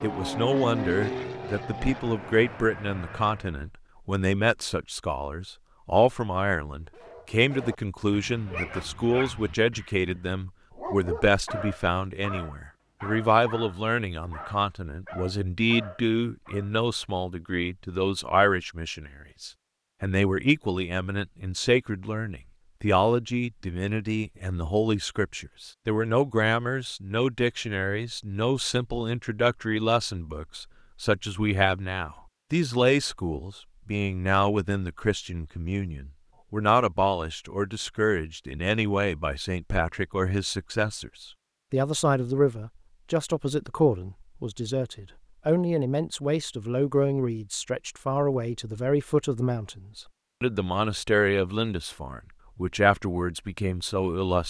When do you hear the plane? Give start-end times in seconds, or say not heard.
0.0-3.7.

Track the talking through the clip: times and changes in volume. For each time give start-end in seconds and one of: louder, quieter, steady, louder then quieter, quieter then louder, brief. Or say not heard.
0.0-54.4 steady.